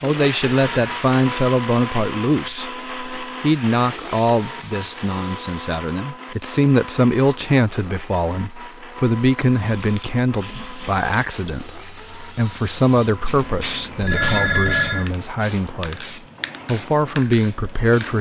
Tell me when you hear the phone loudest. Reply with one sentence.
The volume of the phone peaks at 15 seconds.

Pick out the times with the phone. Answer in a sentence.
You can hear the phone from 0.7 to 1.1 s and from 14.0 to 15.1 s.